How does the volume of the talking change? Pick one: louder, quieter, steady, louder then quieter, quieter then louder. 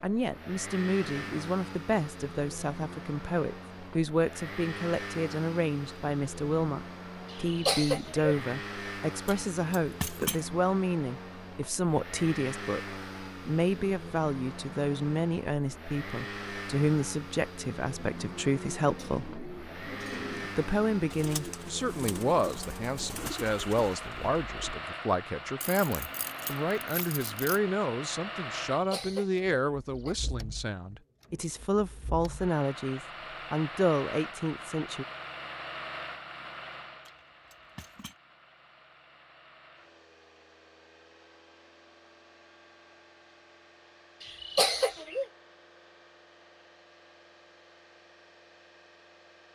steady.